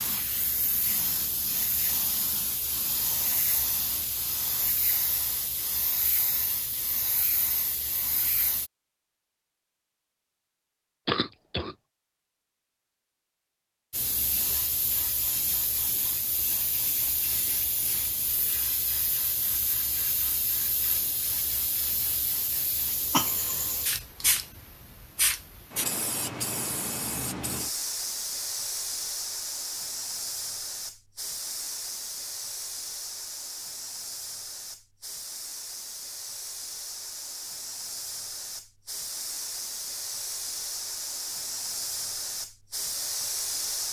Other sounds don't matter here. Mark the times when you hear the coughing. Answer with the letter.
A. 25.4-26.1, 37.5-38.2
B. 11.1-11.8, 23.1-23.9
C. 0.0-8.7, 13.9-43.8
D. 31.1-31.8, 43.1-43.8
B.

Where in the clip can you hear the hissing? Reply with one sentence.
The hissing can be heard from 0.0 to 8.7 s and from 13.9 to 43.8 s.